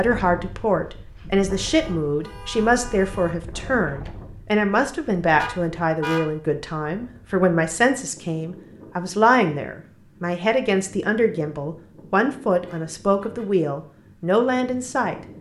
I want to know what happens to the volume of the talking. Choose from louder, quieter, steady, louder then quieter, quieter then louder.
steady.